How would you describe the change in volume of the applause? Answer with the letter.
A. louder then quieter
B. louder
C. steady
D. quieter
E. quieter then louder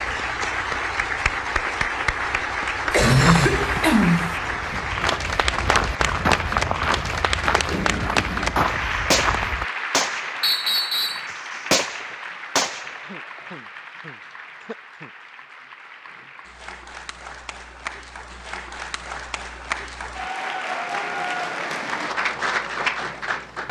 E.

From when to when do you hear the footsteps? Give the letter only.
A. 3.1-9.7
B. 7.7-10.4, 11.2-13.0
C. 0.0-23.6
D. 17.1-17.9
A.